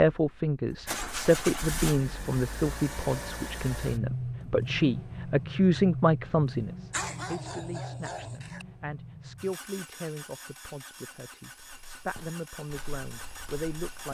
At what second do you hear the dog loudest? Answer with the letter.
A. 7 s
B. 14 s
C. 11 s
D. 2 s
A.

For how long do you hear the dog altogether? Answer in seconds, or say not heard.
2 s.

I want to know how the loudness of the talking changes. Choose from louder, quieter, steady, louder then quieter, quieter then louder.
quieter.